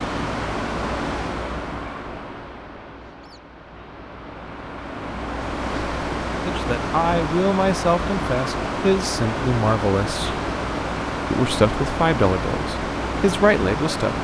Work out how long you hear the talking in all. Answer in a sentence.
You can hear the talking for 7 seconds altogether.